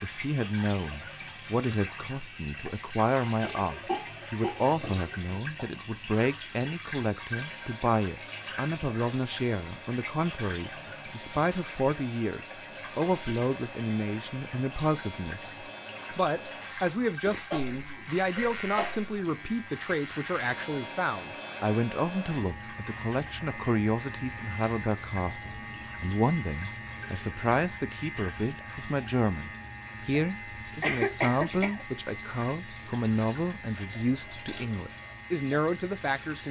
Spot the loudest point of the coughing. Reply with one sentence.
The loudest moment of the coughing is at 31 seconds.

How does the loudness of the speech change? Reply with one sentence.
The volume of the speech stays about the same.